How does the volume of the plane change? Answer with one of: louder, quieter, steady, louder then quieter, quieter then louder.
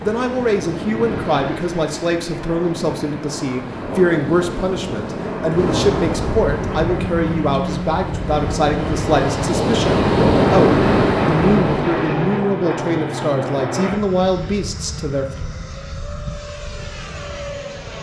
louder then quieter.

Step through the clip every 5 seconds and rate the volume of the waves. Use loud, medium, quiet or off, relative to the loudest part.
quiet, medium, loud, off.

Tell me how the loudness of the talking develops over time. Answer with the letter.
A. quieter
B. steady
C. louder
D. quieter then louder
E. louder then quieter
B.